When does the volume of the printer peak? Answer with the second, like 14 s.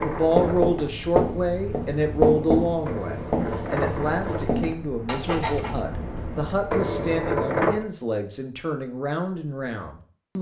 7 s.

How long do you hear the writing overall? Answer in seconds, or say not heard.
6 s.